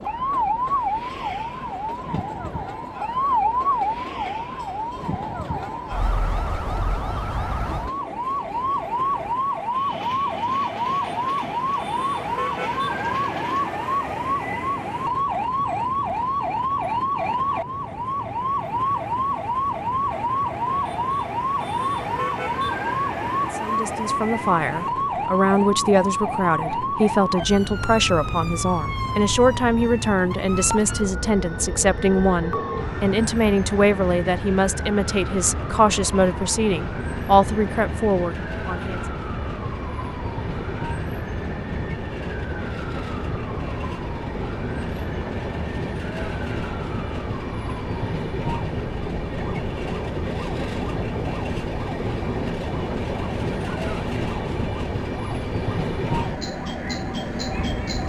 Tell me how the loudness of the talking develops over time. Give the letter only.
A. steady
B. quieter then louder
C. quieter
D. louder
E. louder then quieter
A.